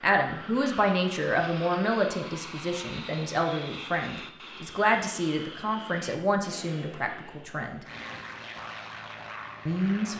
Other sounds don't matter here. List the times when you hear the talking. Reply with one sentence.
You can hear the talking from 0.0 to 7.8 s and from 9.7 to 10.1 s.